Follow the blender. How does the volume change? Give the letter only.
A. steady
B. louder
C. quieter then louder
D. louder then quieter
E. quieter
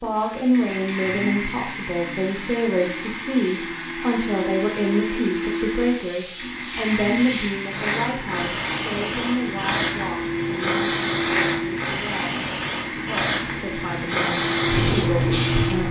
A.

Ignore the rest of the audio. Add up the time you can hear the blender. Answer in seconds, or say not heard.
16 s.